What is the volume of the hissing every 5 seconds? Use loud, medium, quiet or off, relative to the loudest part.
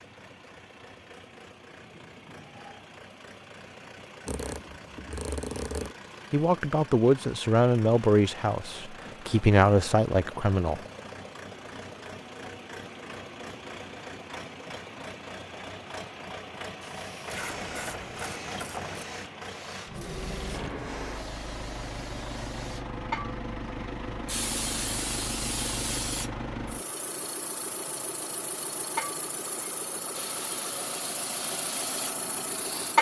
off, off, off, quiet, medium, loud, loud.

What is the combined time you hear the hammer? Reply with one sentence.
You can't hear the hammer here.